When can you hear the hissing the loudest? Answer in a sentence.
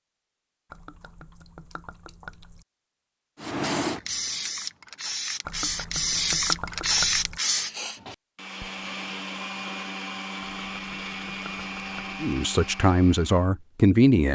The loudest moment of the hissing is at 7 seconds.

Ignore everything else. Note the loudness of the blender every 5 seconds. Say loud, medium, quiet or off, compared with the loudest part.
off, loud, loud.